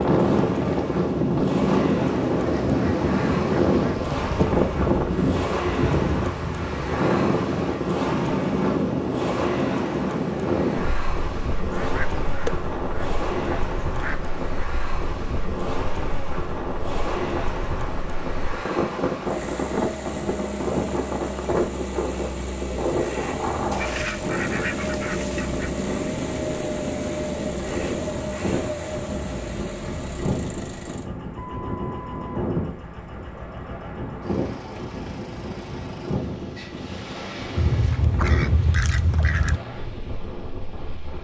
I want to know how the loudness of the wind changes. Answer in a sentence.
The loudness of the wind goes down.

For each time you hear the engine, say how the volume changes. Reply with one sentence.
You can hear the engine from 0.0 to 41.1 s, getting quieter.